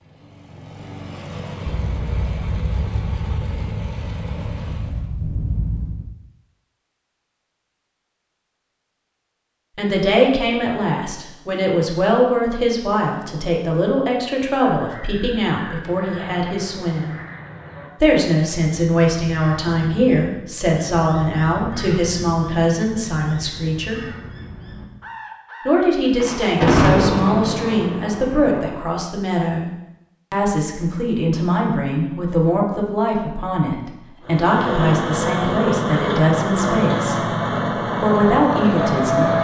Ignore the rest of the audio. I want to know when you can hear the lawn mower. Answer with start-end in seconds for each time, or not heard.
0.0-5.2, 34.2-39.3.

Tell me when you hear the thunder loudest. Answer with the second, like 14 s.
27 s.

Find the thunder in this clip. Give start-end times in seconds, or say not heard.
1.9-6.0, 26.1-28.8.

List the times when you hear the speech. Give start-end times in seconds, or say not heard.
9.8-17.1, 18.0-24.0, 25.6-29.7, 30.3-37.4, 38.0-39.3.